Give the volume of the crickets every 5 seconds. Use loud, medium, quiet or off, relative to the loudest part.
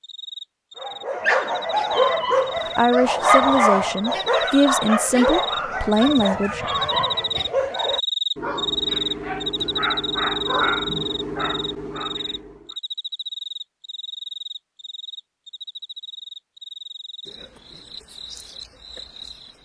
medium, loud, medium, quiet.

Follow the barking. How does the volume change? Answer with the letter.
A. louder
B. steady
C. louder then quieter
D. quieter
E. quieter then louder
D.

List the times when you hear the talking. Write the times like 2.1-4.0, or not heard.
2.8-6.7.